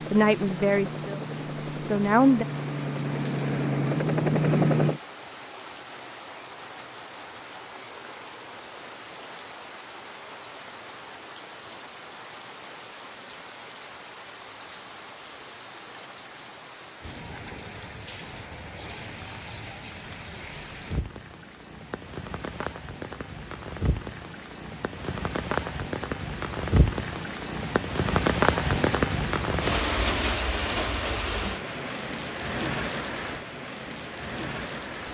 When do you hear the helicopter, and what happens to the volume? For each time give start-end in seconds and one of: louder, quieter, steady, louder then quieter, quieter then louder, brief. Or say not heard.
0.0-5.0 louder.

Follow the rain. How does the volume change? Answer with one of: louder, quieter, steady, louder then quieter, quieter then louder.
louder.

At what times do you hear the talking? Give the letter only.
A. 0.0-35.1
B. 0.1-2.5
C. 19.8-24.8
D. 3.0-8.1
B.